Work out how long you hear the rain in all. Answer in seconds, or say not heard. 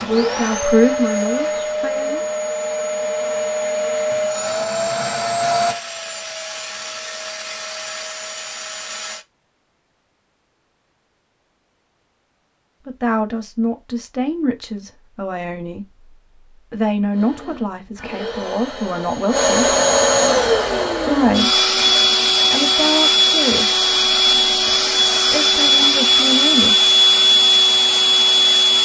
not heard.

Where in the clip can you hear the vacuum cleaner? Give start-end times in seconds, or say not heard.
0.0-9.2, 17.1-28.8.